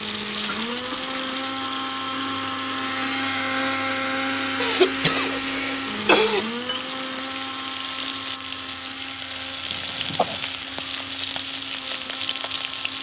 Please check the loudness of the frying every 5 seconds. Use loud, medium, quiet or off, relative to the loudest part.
medium, loud, loud.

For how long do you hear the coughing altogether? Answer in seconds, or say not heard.
3 s.